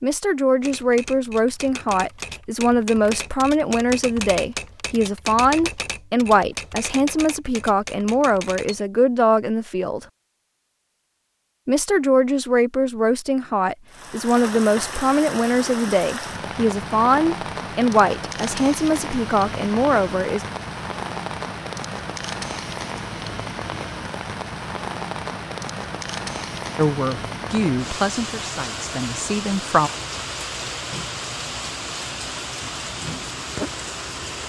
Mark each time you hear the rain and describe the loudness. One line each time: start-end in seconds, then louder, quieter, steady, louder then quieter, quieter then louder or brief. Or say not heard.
13.9-34.4 steady.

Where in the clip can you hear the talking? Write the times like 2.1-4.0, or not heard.
0.0-10.1, 11.7-20.4, 26.8-29.9.